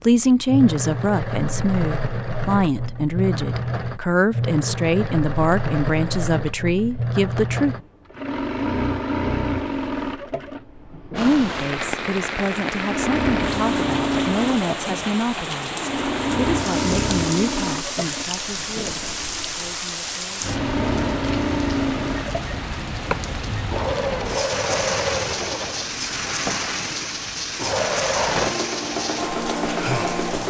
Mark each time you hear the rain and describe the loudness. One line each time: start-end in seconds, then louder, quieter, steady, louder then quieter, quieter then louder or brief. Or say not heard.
11.2-30.4 steady.